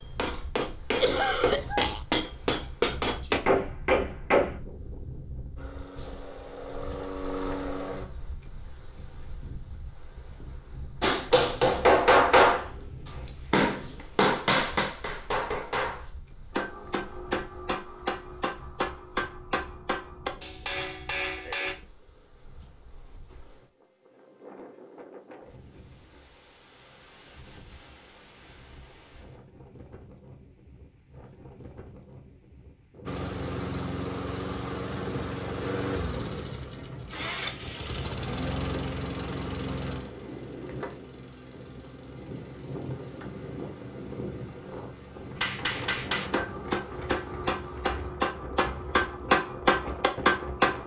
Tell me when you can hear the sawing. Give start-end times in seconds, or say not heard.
not heard.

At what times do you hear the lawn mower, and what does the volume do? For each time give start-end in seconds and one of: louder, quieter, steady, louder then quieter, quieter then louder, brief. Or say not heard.
5.5-8.1 brief
33.0-48.1 quieter.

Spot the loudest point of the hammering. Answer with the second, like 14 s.
12 s.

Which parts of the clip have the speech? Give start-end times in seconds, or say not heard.
not heard.